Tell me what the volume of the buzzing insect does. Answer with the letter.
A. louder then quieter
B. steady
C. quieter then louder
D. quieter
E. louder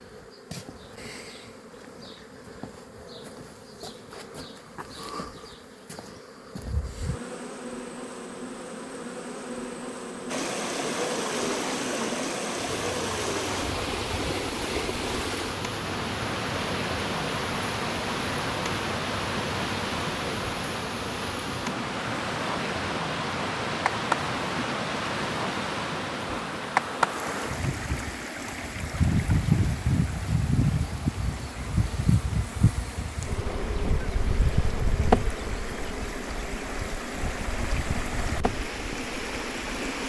E.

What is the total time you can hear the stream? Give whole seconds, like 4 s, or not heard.
30 s.